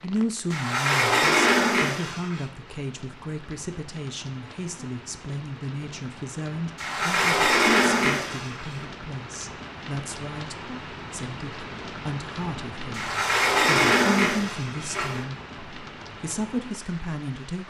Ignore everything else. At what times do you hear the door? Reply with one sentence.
You can hear the door from 0.5 to 2.5 s, from 6.8 to 8.8 s and from 12.9 to 15.2 s.